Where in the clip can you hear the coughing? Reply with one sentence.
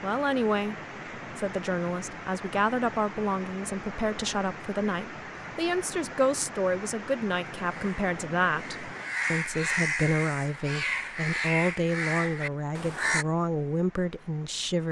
The coughing can't be heard in this clip.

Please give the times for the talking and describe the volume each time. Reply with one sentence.
The talking can be heard from 0.0 to 14.8 s, at a steady volume.